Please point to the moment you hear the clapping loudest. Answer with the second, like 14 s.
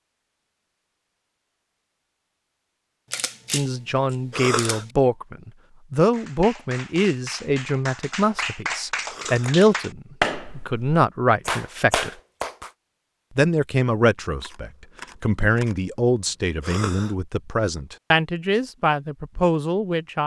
10 s.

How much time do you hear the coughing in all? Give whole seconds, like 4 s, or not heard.
2 s.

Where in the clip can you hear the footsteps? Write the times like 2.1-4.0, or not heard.
not heard.